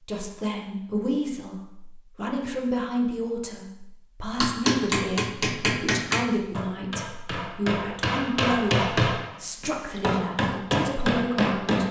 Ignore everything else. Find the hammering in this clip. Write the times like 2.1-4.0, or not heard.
4.4-11.8.